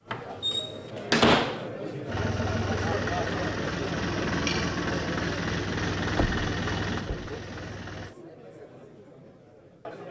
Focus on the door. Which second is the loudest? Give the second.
1 s.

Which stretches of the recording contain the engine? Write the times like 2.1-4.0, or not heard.
2.0-8.2.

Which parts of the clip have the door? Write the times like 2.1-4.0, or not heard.
0.1-1.7, 6.2-7.2.